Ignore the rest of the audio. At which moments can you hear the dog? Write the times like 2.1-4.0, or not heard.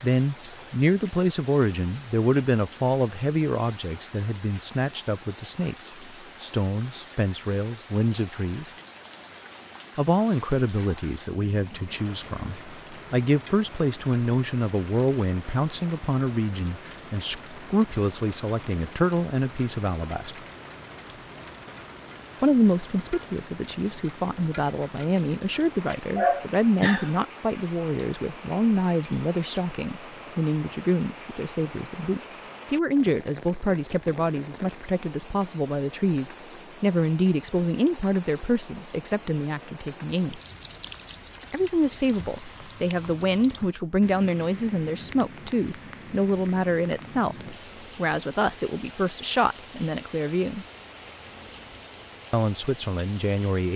25.9-27.1.